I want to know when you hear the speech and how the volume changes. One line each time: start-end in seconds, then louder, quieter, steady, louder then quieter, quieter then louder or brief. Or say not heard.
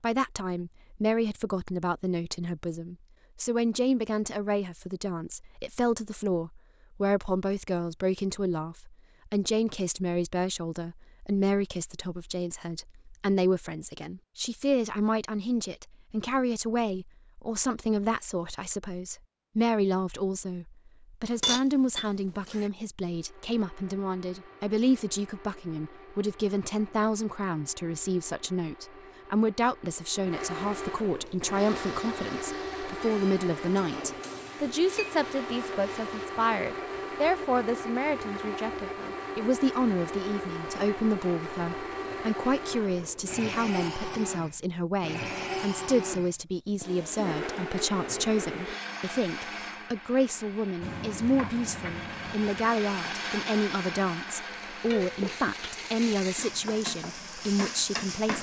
0.0-58.3 steady.